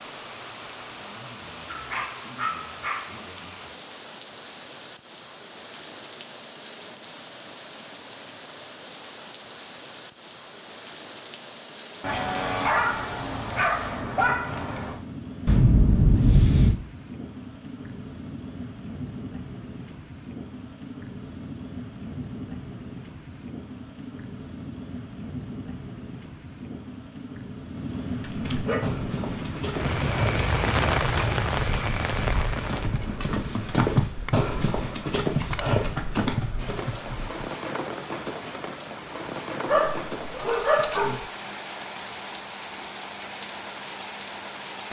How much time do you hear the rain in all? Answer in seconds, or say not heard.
45 s.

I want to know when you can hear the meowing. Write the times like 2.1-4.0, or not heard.
15.4-16.8.